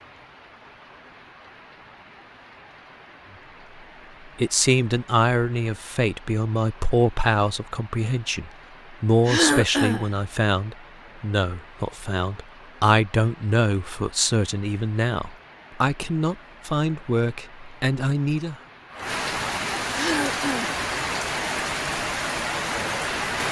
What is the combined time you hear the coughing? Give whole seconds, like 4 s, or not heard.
2 s.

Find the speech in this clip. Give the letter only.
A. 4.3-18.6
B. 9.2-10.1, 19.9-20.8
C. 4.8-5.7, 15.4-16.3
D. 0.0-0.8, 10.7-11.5
A.